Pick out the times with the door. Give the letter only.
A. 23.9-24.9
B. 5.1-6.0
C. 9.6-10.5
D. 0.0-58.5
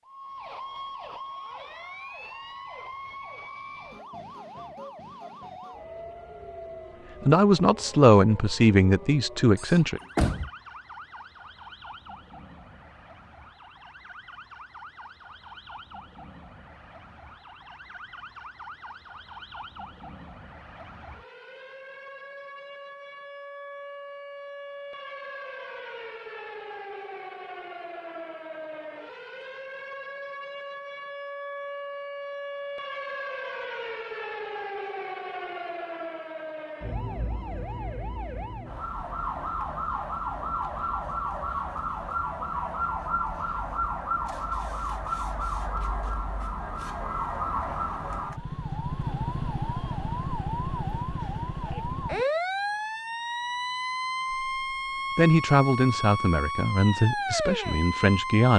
C.